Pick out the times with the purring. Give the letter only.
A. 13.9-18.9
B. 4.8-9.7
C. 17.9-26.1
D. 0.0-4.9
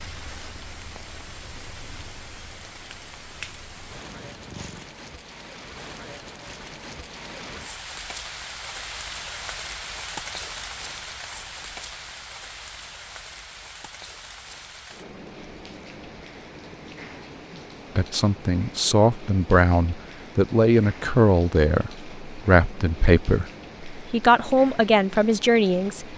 D.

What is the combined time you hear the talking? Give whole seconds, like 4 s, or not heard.
8 s.